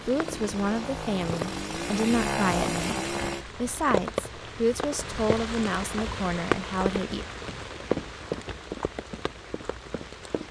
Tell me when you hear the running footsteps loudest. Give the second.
8 s.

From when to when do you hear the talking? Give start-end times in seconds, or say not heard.
0.1-7.2.